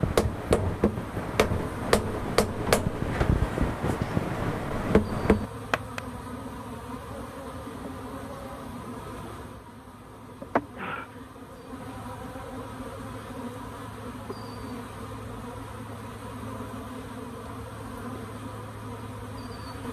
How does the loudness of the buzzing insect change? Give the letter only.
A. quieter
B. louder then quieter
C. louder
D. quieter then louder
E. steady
E.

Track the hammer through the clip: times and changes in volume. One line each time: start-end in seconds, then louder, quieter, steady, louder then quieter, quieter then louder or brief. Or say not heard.
0.0-6.0 steady.